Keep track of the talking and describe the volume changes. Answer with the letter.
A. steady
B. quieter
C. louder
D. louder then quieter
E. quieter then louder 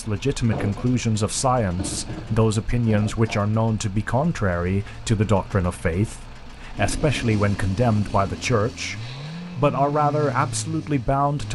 A.